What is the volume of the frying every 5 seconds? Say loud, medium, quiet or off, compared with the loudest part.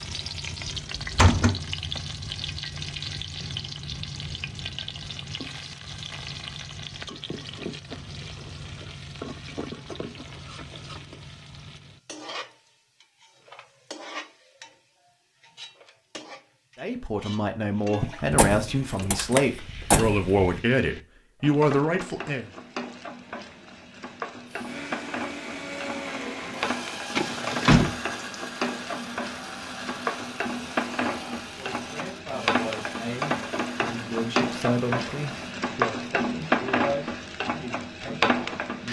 medium, medium, quiet, quiet, medium, medium, loud, loud.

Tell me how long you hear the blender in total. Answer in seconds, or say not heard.
11 s.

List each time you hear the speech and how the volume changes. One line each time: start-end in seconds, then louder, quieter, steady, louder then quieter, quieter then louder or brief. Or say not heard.
16.8-22.5 louder
31.4-38.8 louder then quieter.